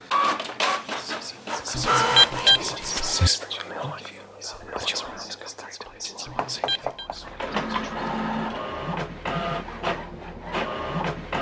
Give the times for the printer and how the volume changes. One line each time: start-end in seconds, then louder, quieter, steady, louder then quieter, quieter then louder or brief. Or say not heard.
0.0-2.5 brief
7.0-11.3 steady.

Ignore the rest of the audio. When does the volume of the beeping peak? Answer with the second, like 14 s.
2 s.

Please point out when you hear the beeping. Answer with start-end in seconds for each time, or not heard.
1.8-3.3, 6.2-7.1.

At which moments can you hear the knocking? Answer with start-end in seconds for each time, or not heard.
6.3-7.2.